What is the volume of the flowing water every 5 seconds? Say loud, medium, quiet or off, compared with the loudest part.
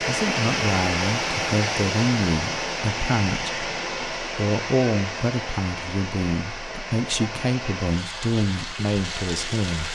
loud, medium.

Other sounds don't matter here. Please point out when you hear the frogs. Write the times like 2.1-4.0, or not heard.
not heard.